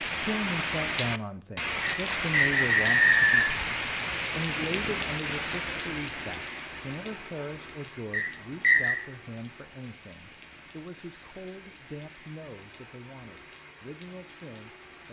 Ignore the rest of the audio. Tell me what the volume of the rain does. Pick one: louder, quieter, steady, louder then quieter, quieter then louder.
quieter.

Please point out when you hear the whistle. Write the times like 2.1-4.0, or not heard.
1.8-3.5, 8.1-8.9.